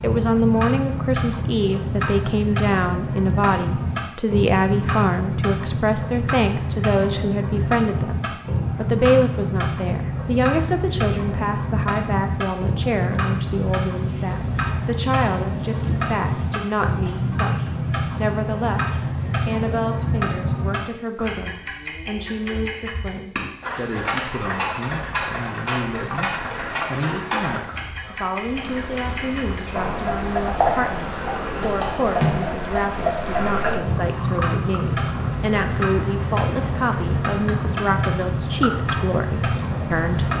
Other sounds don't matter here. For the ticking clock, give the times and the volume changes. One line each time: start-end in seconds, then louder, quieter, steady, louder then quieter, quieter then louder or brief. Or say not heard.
0.0-40.3 steady.